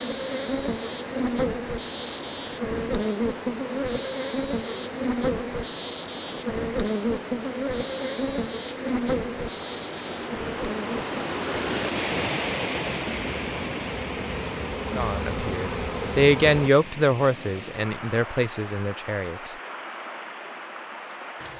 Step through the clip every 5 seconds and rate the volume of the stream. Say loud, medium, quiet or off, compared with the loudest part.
medium, medium, loud, medium, medium.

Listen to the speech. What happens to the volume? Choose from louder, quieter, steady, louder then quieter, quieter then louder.
louder then quieter.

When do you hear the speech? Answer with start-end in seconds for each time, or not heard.
14.9-19.5.